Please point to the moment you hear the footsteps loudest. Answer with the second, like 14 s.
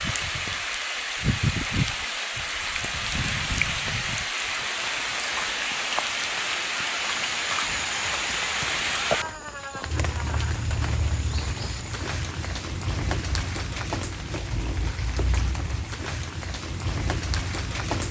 9 s.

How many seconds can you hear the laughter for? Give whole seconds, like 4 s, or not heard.
2 s.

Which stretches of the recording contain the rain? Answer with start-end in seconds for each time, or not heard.
0.0-18.0.